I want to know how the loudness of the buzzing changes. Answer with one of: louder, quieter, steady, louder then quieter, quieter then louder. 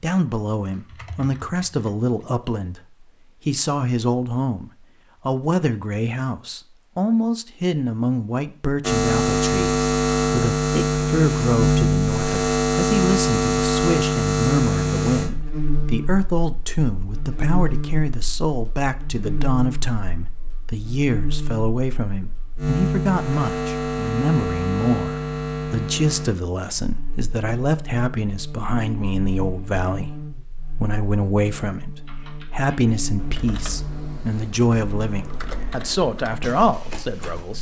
quieter.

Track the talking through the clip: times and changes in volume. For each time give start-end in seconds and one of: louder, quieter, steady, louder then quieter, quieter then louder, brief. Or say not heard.
0.0-37.5 steady.